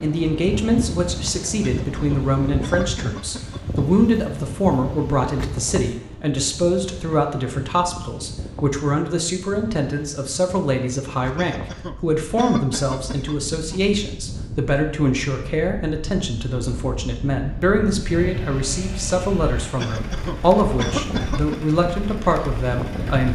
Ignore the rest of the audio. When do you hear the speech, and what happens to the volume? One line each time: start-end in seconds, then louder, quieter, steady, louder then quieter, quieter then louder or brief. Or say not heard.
0.0-23.3 steady.